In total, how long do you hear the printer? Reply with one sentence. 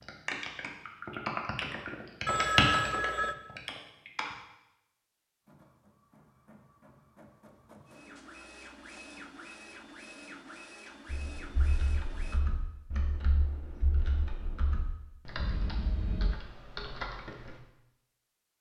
The printer can be heard for 7 seconds in total.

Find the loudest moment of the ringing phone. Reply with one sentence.
The volume of the ringing phone peaks at 3 seconds.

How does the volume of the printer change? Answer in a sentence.
The loudness of the printer goes up.